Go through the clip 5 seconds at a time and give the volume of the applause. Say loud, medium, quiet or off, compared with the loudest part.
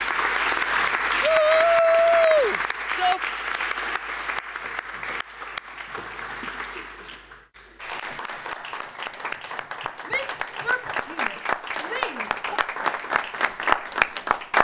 loud, medium, loud.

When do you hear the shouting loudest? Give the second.
2 s.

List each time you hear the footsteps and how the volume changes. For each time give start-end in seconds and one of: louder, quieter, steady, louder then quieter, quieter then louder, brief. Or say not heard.
not heard.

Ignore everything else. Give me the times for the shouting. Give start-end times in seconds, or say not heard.
1.2-3.2, 10.1-12.6.